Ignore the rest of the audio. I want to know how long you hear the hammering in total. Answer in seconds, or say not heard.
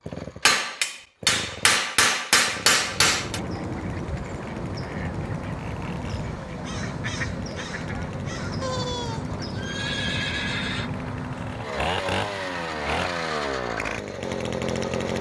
3 s.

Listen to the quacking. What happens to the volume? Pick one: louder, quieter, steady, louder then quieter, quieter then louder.
steady.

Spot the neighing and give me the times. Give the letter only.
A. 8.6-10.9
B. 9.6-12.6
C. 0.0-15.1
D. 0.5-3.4
A.